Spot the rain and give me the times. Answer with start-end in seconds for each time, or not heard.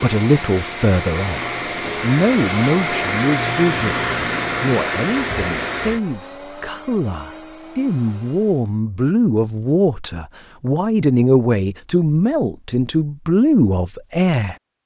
not heard.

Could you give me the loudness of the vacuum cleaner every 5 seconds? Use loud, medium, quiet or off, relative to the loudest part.
loud, loud, off.